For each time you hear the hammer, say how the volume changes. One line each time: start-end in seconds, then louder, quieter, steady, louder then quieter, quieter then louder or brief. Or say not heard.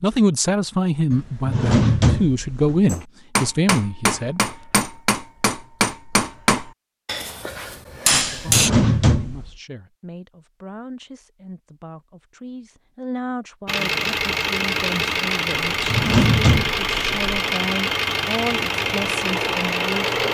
2.9-8.7 steady.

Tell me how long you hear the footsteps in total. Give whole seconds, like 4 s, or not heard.
not heard.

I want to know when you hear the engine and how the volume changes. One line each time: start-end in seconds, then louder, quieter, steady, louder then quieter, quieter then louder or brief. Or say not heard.
13.7-20.2 steady.